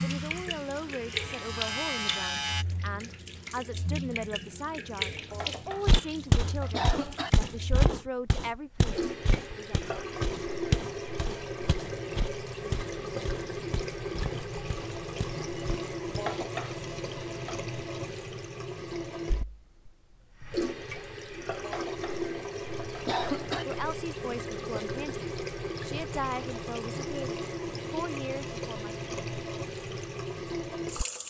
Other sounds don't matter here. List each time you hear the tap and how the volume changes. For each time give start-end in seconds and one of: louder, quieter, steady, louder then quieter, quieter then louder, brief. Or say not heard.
0.0-31.2 steady.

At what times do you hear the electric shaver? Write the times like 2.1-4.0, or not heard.
0.0-2.6.